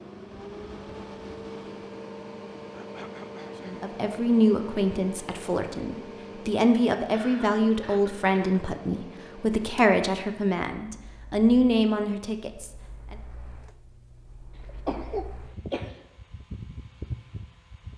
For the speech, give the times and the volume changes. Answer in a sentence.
The speech can be heard from 3.6 to 13.2 s, at a steady volume.